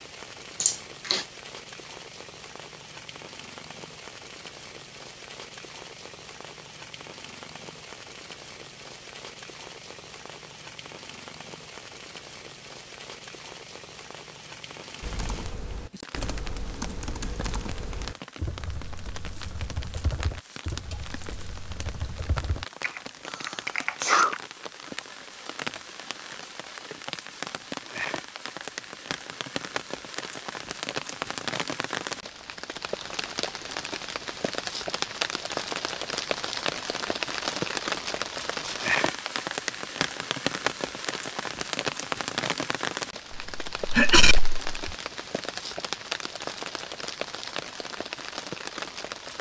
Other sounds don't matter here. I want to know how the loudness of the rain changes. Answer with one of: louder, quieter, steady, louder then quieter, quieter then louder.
louder.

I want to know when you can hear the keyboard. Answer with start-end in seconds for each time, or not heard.
15.0-24.4.